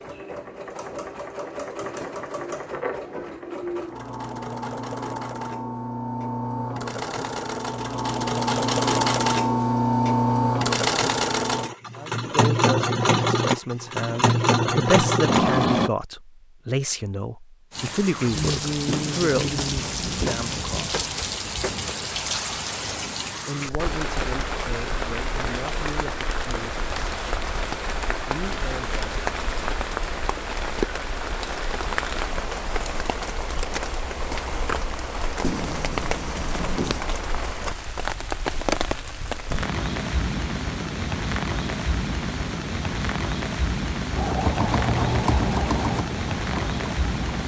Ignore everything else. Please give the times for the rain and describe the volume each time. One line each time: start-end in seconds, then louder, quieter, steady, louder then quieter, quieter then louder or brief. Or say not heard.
17.7-47.4 steady.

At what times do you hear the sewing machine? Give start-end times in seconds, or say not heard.
0.0-15.9, 44.1-47.4.